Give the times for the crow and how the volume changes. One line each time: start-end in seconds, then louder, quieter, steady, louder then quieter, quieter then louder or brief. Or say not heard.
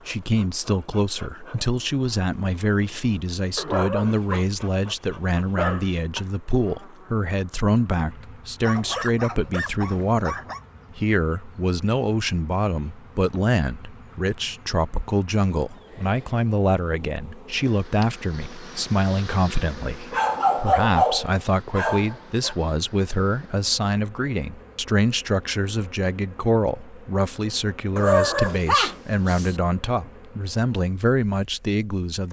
not heard.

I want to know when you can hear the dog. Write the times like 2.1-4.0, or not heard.
3.5-6.0, 8.6-10.6, 20.1-22.6, 27.9-29.6.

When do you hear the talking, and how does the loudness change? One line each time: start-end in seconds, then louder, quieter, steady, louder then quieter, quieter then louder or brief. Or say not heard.
0.1-32.2 steady.